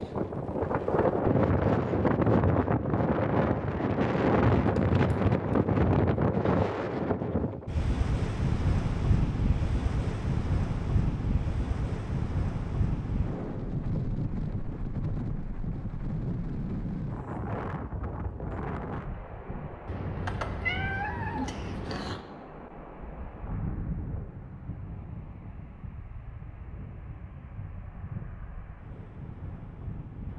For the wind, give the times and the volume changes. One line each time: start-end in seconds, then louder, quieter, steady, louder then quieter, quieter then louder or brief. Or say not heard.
0.0-30.3 quieter.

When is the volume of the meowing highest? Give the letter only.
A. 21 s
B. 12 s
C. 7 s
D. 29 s
A.